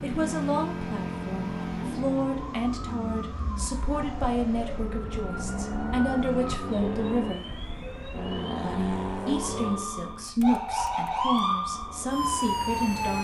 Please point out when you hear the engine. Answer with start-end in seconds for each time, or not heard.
0.0-13.0.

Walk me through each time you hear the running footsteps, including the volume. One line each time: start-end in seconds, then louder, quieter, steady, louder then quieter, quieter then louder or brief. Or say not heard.
not heard.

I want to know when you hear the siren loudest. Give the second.
11 s.